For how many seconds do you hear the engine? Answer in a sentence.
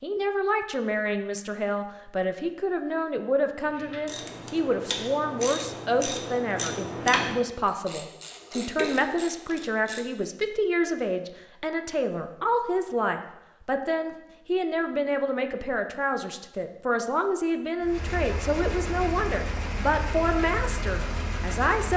You can hear the engine for 4 seconds altogether.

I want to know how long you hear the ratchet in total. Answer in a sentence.
The ratchet can be heard for 6 seconds in total.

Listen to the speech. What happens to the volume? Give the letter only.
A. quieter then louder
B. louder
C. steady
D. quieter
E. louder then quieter
C.